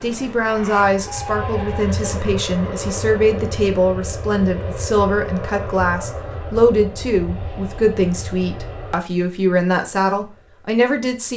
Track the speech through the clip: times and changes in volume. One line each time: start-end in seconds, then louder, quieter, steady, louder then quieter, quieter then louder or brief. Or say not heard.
0.0-11.3 steady.